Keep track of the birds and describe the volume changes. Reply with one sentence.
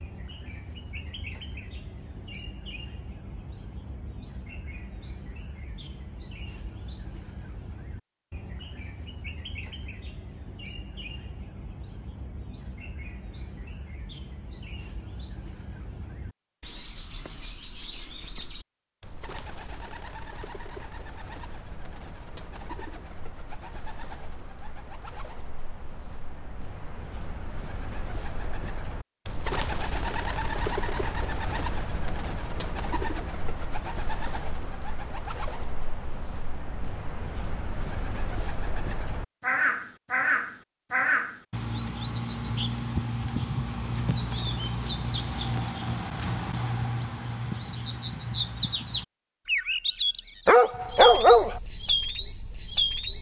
The loudness of the birds goes up.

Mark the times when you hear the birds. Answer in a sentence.
You can hear the birds from 0.0 to 53.1 s.